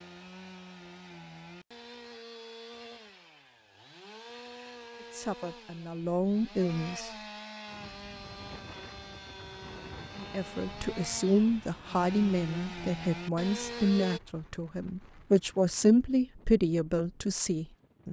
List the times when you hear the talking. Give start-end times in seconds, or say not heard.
5.2-7.1, 10.2-18.0.